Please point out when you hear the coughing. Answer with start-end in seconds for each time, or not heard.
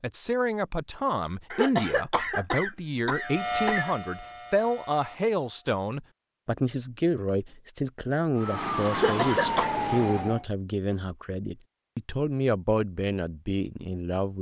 1.5-4.0, 8.9-9.7.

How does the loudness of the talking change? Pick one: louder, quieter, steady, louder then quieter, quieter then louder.
steady.